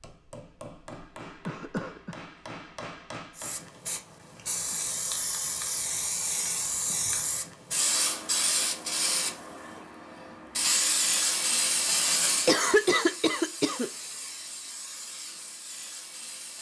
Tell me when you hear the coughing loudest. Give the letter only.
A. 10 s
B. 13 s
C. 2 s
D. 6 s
B.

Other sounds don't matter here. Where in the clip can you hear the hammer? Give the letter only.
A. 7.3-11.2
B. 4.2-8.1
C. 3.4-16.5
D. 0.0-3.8
D.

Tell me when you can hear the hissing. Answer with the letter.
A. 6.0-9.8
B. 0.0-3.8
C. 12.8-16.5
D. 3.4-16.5
D.